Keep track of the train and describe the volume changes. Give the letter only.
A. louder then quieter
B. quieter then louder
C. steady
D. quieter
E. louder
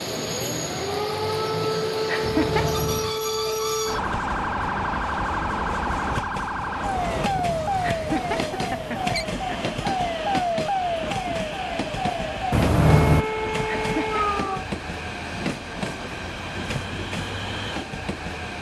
C.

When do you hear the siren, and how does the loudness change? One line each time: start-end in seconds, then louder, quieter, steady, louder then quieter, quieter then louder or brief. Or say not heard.
0.0-14.7 steady.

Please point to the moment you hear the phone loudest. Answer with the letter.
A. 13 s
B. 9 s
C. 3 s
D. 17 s
A.